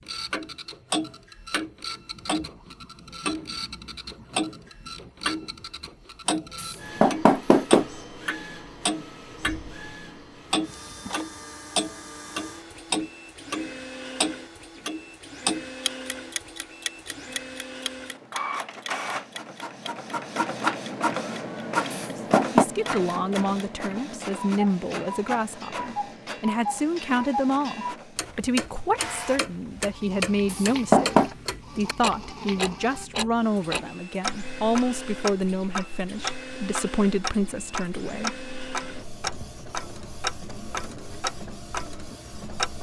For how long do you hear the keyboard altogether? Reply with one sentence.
You can't hear the keyboard here.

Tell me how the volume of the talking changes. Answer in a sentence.
The loudness of the talking stays about the same.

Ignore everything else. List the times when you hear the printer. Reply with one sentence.
You can hear the printer from 0.0 to 42.7 s.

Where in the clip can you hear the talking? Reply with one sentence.
The talking can be heard from 22.6 to 38.4 s.